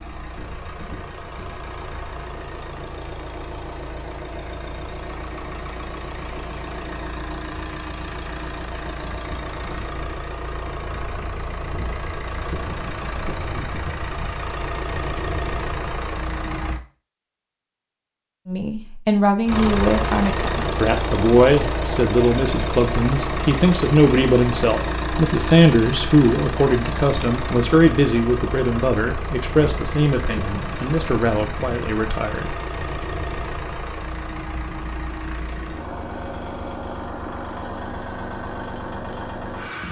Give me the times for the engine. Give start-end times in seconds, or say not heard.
0.0-16.8, 19.4-39.8.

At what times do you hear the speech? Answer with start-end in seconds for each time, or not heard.
18.4-32.5.